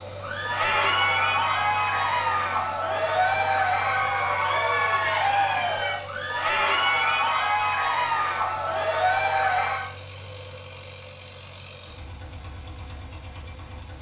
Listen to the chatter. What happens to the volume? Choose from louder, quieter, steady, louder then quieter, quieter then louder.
steady.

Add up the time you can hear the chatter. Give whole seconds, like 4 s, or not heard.
10 s.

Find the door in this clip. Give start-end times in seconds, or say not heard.
not heard.